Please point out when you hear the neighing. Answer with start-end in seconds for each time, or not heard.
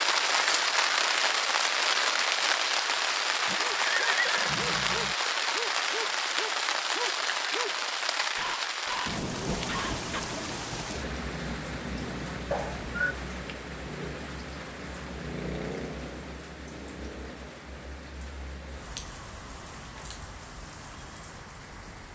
3.5-5.2, 12.5-13.2.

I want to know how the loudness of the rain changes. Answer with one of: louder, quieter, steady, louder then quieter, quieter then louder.
quieter.